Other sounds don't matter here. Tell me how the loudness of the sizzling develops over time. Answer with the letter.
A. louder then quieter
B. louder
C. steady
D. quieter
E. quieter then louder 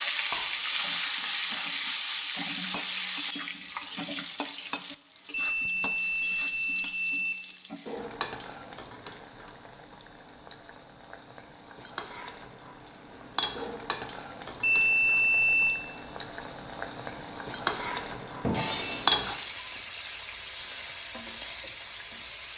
E.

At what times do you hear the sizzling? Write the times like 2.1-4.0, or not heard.
0.0-22.5.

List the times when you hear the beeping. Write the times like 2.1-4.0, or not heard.
5.3-7.3, 14.6-15.8.